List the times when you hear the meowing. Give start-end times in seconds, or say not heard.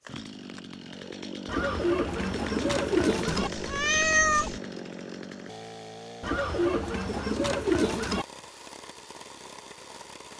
3.2-4.6.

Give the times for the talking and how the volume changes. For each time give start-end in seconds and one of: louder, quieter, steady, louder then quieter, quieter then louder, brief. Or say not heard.
not heard.